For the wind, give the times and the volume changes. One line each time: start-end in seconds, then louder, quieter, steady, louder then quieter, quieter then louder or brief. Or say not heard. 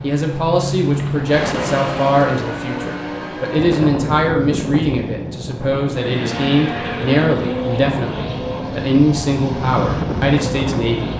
3.5-11.1 quieter then louder.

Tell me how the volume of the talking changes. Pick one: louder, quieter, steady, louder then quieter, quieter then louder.
steady.